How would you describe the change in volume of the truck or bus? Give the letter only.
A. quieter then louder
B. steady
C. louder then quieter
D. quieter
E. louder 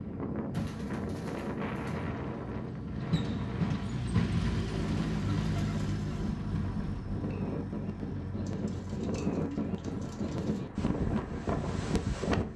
C.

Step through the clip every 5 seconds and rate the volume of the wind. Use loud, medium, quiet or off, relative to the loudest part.
medium, loud, loud.